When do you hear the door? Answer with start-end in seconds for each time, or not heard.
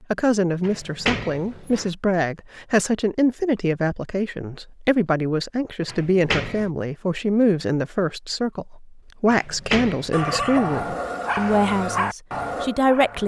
0.6-1.9, 5.8-6.7, 9.3-10.2.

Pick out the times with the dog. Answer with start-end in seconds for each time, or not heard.
10.1-13.2.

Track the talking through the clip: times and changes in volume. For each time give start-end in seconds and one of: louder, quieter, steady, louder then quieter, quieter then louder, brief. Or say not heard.
0.1-13.2 steady.